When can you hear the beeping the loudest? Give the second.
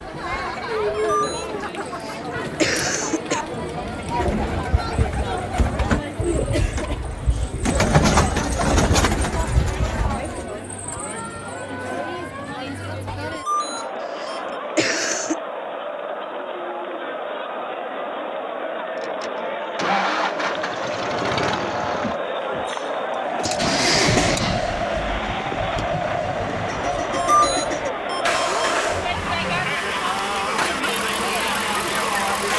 27 s.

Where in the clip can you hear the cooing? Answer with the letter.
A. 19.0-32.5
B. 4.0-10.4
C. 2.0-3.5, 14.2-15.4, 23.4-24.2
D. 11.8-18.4
B.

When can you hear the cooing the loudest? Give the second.
8 s.